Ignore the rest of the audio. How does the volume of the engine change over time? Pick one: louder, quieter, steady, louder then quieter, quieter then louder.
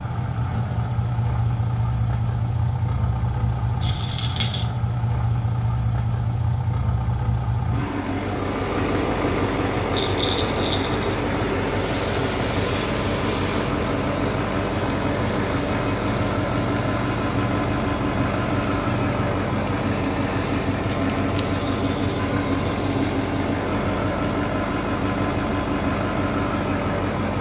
steady.